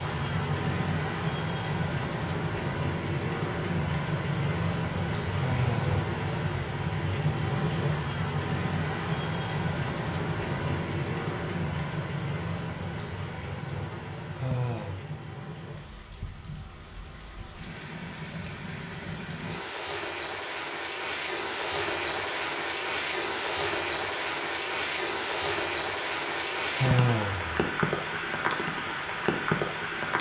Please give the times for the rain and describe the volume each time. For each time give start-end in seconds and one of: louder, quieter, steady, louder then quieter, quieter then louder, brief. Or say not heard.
0.0-30.1 quieter then louder.